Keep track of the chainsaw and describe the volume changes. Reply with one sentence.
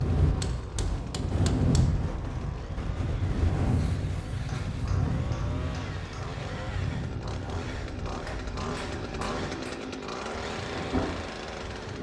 The loudness of the chainsaw goes up.